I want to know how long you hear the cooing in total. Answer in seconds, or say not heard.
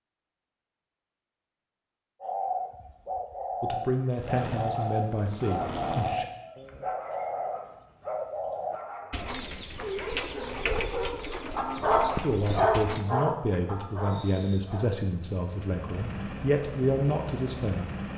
11 s.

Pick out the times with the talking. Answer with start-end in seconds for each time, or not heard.
3.6-6.2, 12.2-17.9.